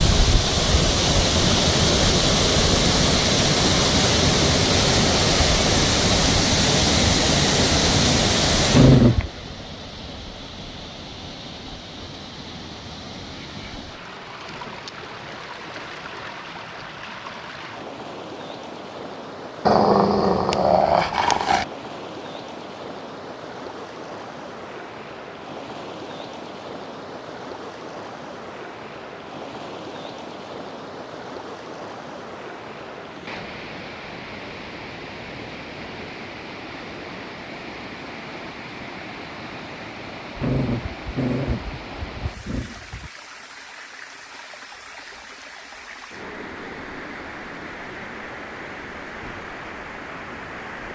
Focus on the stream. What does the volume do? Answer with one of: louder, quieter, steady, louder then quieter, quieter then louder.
quieter.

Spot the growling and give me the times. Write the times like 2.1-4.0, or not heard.
8.7-9.3, 19.6-21.6, 40.4-43.1.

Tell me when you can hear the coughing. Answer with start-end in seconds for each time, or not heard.
not heard.